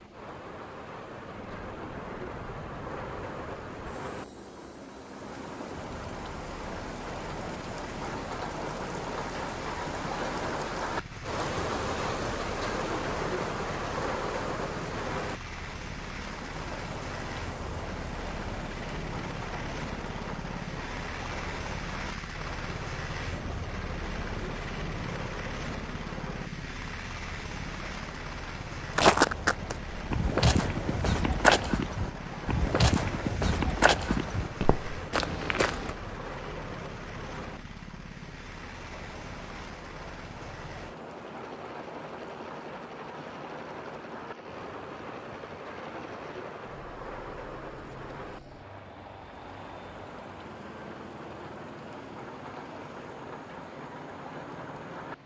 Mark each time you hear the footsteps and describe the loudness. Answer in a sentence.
You can hear the footsteps from 28.9 to 36.0 s, getting quieter.